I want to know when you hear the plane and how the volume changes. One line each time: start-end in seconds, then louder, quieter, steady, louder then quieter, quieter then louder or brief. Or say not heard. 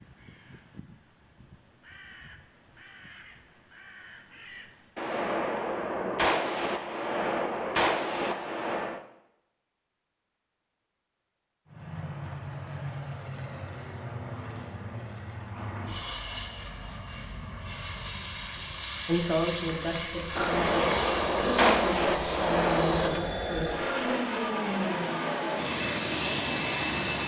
11.7-27.2 louder.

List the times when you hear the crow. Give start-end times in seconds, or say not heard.
0.0-5.1.